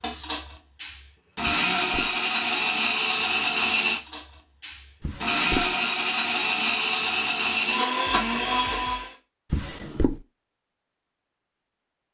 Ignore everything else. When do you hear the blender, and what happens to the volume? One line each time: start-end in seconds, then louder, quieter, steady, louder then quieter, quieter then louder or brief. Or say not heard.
0.0-9.2 steady.